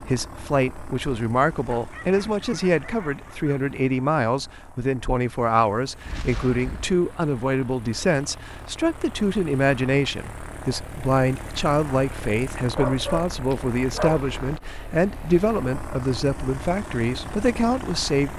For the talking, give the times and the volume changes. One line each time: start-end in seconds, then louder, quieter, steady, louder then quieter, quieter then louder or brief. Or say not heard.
0.0-18.3 steady.